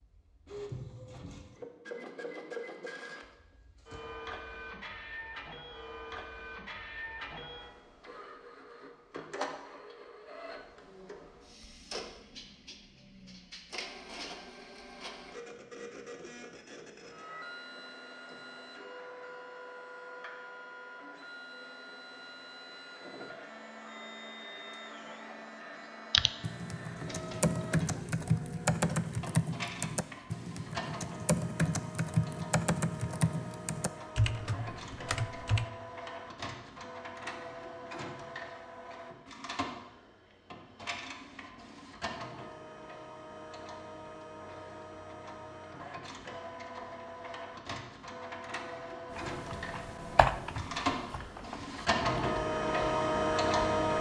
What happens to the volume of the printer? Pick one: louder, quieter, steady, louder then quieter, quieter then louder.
louder.